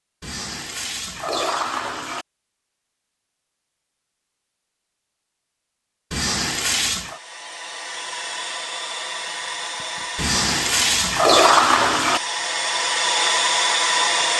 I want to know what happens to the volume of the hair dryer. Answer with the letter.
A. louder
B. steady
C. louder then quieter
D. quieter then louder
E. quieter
A.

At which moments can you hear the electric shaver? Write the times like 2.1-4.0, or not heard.
not heard.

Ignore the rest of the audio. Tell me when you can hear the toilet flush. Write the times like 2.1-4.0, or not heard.
0.2-2.2, 6.1-7.2, 10.2-12.2.